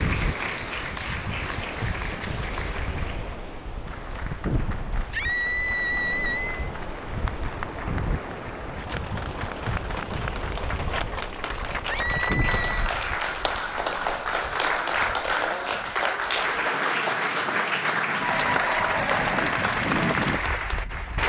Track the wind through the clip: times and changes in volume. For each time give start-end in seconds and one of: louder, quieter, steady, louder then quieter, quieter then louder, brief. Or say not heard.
0.0-21.2 quieter then louder.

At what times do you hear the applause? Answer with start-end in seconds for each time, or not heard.
0.0-21.2.